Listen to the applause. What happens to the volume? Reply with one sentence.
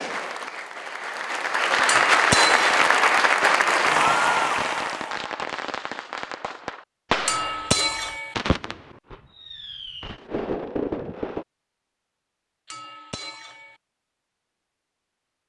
The volume of the applause goes up.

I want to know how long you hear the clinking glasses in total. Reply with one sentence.
The clinking glasses can be heard for 3 seconds in total.